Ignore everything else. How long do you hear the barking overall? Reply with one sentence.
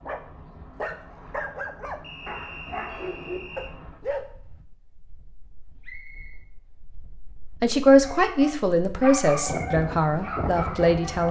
The barking can be heard for 8 seconds in total.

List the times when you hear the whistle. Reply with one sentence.
The whistle can be heard from 2.0 to 3.8 s and from 5.8 to 6.5 s.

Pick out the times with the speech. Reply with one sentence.
The speech can be heard from 7.6 to 11.2 s.